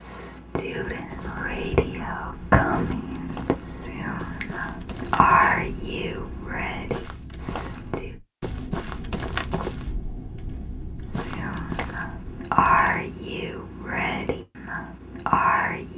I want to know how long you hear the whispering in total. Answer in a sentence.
The whispering can be heard for 13 seconds in total.